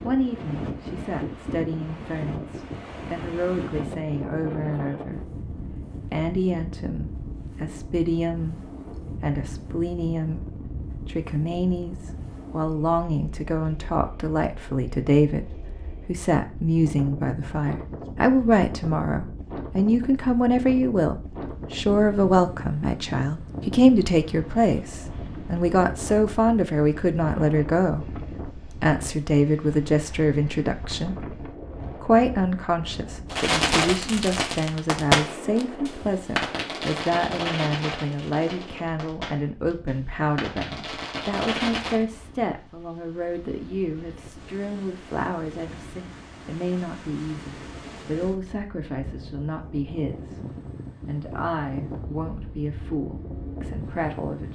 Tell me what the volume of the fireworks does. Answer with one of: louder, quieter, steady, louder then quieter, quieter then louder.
quieter then louder.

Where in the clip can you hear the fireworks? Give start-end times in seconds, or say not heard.
33.3-42.0.